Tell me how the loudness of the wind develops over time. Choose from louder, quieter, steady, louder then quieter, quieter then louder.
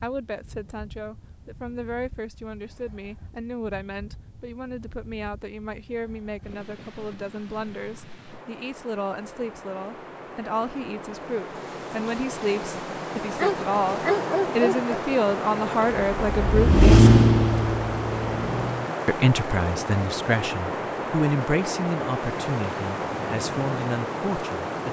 louder.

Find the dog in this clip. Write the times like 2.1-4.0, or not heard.
13.3-14.9.